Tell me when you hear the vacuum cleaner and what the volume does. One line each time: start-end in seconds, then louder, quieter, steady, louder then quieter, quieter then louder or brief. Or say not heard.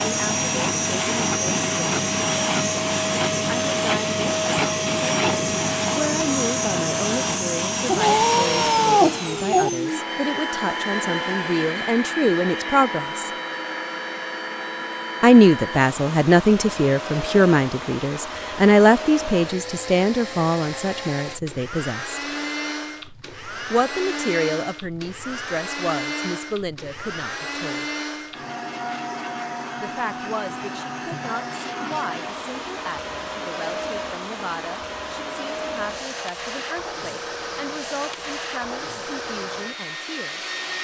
0.0-40.7 quieter.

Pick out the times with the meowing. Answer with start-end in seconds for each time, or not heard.
7.8-9.7.